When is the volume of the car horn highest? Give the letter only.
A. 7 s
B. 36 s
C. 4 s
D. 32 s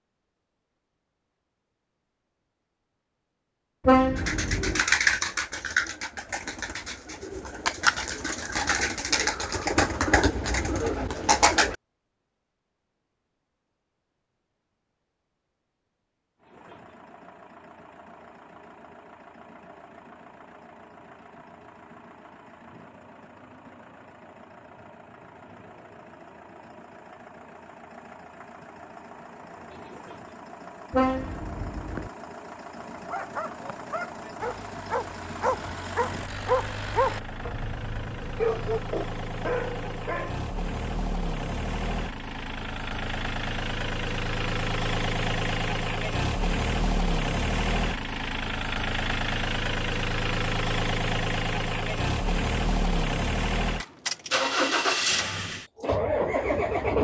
C.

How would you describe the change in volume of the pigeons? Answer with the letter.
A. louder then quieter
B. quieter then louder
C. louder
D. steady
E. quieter
B.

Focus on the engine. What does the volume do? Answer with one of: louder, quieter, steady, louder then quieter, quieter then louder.
louder.